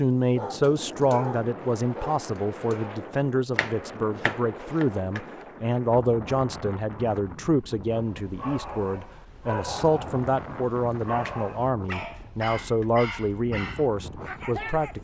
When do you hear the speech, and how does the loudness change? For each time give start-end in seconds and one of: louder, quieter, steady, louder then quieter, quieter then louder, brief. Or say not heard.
0.0-14.9 steady.